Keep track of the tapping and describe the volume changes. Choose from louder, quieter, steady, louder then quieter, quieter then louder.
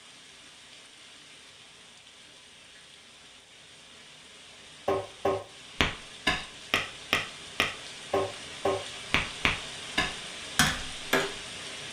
steady.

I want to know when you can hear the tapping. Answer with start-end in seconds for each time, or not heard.
4.8-11.3.